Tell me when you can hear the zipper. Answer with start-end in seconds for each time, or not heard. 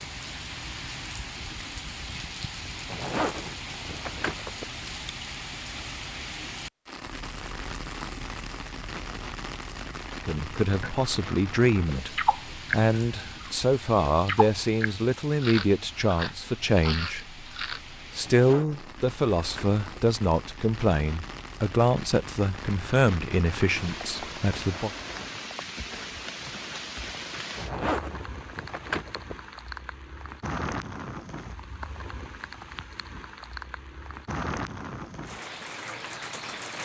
2.6-4.7, 18.0-19.9, 27.3-29.4.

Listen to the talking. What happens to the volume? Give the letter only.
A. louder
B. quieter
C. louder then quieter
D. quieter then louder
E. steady
E.